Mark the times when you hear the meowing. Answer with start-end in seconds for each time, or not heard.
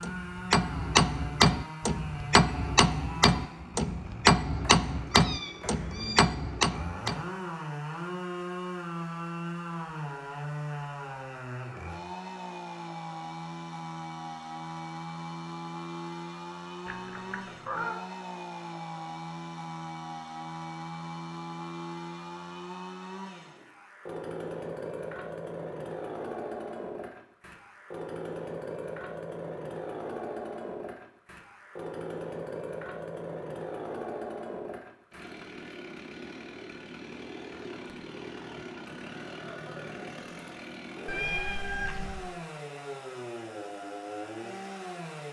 5.1-6.3, 16.9-18.1, 41.0-42.3.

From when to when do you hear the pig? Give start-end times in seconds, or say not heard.
not heard.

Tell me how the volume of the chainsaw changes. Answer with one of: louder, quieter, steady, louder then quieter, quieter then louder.
steady.